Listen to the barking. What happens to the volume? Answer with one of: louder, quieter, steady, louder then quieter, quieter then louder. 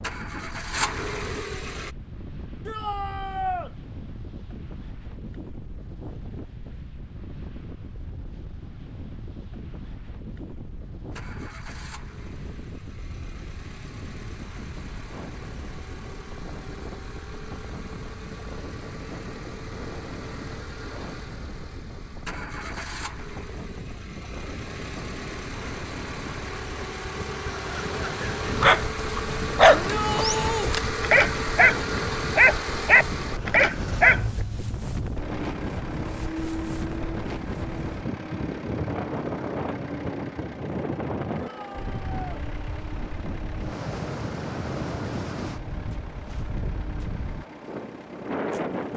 quieter then louder.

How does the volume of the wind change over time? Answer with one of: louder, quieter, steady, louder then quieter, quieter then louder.
louder.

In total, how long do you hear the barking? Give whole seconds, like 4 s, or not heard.
6 s.